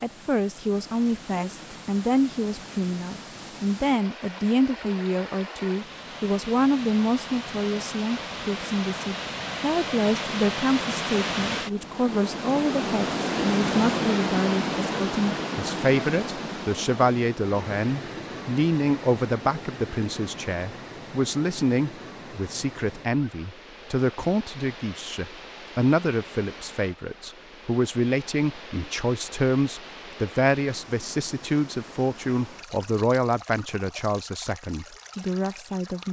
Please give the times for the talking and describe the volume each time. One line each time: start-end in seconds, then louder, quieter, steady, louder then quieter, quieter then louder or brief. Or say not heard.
0.0-36.0 steady.